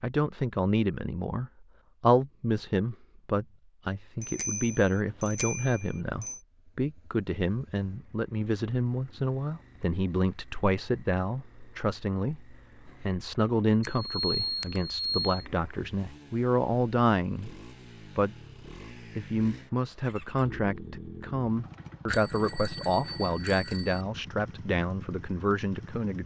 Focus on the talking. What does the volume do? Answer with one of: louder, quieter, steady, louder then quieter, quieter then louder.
steady.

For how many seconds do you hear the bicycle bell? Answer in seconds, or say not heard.
6 s.